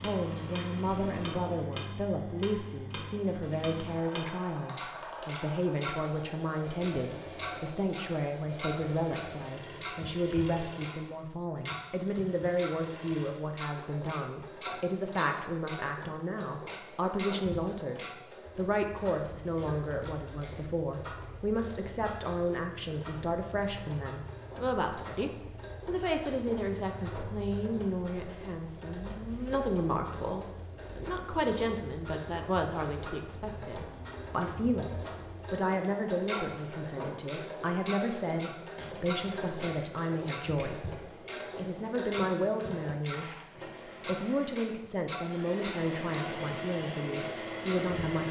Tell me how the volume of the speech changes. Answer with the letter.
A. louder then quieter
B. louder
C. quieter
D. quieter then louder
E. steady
E.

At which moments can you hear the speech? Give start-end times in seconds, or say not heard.
0.0-43.2, 44.0-48.2.